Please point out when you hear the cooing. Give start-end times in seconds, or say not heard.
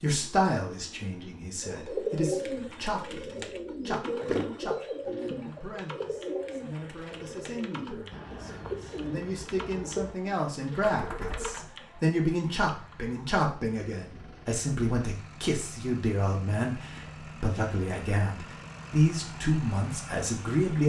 1.6-11.7.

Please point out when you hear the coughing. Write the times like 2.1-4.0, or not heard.
not heard.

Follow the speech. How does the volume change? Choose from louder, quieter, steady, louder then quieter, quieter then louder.
quieter then louder.